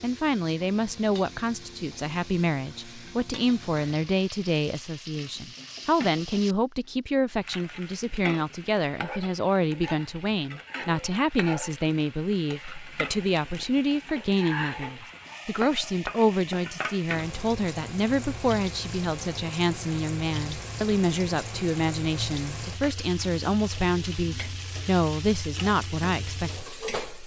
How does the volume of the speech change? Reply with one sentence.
The loudness of the speech stays about the same.